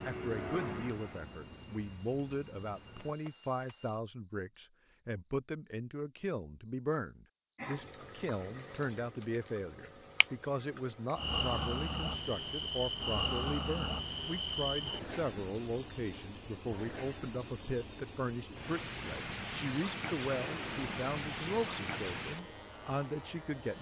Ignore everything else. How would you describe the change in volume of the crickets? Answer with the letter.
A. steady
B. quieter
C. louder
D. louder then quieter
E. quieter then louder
A.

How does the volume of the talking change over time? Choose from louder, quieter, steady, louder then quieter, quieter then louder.
steady.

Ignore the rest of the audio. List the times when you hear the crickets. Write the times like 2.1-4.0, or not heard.
0.0-23.7.